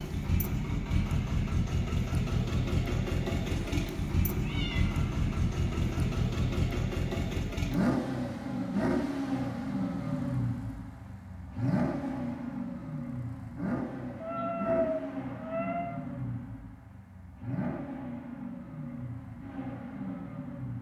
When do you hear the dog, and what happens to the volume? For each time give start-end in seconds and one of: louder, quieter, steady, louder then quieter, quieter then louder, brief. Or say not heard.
not heard.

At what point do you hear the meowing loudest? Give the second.
15 s.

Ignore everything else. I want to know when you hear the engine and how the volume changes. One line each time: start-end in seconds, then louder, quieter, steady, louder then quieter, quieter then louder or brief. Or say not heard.
0.0-20.7 quieter.